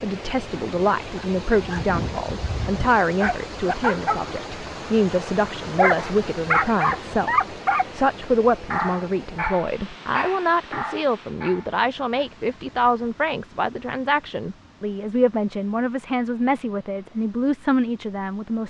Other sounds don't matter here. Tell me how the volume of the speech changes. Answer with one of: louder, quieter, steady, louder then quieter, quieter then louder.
steady.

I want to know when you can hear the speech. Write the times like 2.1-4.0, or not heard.
0.0-18.6.